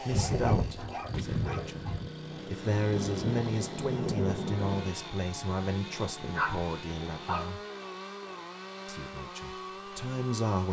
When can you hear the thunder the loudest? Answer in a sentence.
The loudest moment of the thunder is at 4 seconds.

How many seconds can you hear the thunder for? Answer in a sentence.
You can hear the thunder for 2 seconds altogether.